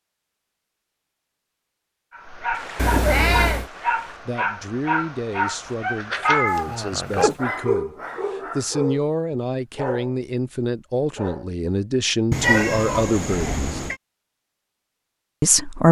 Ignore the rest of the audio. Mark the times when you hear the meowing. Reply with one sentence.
The meowing can be heard from 2.8 to 3.7 s, from 6.2 to 7.3 s and from 12.3 to 13.9 s.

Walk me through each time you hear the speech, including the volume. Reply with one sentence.
The speech can be heard from 4.2 to 13.8 s, getting louder; and briefly from 15.4 to 15.8 s.